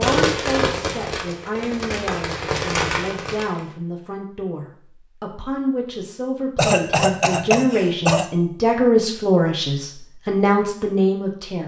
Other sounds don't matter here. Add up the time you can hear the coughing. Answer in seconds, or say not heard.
2 s.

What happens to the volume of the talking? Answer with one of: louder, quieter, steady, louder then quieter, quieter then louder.
louder.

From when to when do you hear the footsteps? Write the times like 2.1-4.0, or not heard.
not heard.